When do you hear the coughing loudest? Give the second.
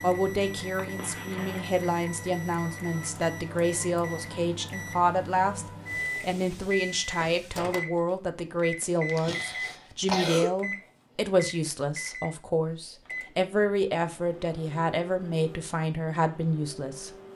10 s.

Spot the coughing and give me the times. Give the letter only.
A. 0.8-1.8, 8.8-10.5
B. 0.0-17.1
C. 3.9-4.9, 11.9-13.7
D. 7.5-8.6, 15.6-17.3
A.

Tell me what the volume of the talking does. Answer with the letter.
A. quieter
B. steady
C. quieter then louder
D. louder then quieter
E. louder
B.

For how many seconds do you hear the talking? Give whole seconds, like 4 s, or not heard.
17 s.